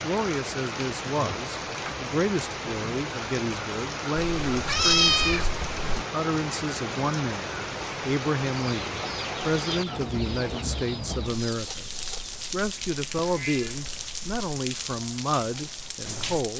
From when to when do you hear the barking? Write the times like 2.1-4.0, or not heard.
not heard.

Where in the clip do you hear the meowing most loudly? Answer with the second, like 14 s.
5 s.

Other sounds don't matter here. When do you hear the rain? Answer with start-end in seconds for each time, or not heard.
0.0-16.5.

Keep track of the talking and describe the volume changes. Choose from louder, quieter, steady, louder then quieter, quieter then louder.
steady.